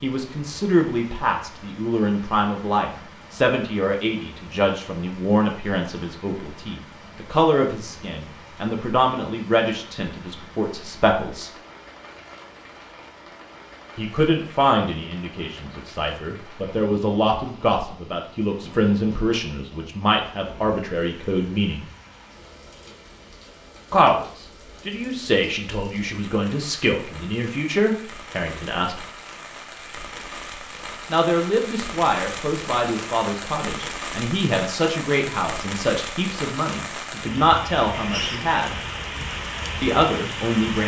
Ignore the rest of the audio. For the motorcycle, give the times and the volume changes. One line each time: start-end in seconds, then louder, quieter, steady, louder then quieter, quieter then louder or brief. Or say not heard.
not heard.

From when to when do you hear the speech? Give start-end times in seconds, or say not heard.
0.0-11.5, 13.9-21.9, 23.9-29.0, 31.1-38.8, 39.8-40.8.